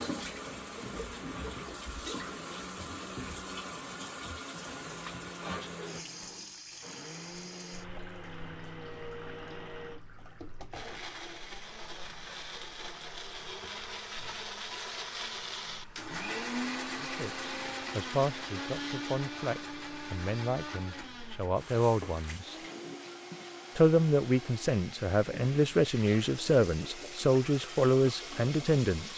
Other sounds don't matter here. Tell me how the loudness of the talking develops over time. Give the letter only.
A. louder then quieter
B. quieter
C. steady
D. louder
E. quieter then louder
D.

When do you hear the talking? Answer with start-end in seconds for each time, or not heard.
17.0-22.6, 23.8-29.1.